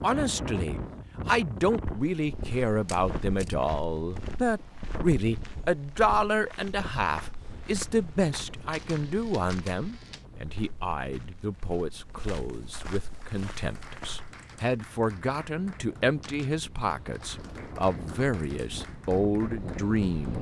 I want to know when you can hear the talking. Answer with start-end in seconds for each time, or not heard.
0.0-20.3.